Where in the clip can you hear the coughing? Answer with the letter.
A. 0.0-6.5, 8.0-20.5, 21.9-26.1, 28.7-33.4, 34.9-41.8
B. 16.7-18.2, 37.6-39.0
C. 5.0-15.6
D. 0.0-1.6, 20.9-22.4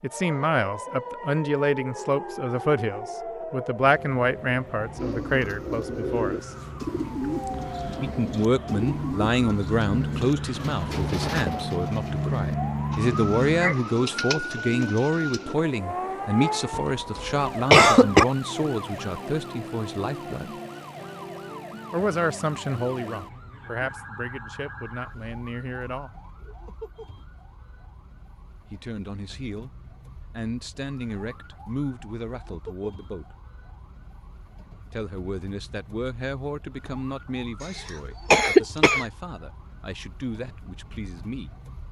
B.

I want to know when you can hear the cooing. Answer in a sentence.
The cooing can be heard from 5.0 to 15.6 s.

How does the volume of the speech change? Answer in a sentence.
The loudness of the speech goes down.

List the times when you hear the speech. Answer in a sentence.
The speech can be heard from 0.0 to 6.5 s, from 8.0 to 20.5 s, from 21.9 to 26.1 s, from 28.7 to 33.4 s and from 34.9 to 41.8 s.